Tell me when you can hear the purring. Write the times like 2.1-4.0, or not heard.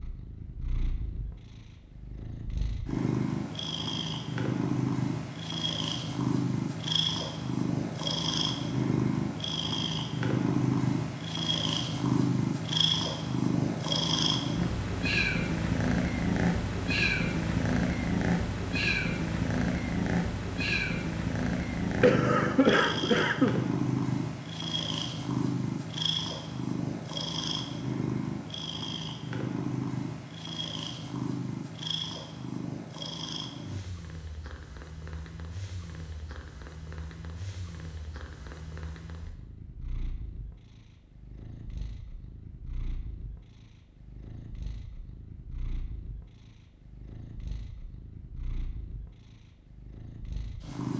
0.0-50.9.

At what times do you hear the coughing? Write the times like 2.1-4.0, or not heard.
22.0-23.6.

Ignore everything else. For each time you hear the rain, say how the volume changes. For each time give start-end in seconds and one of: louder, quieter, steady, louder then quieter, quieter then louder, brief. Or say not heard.
not heard.